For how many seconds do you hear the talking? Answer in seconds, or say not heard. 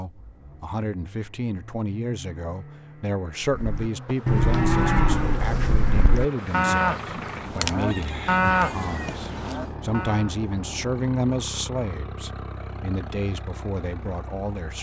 15 s.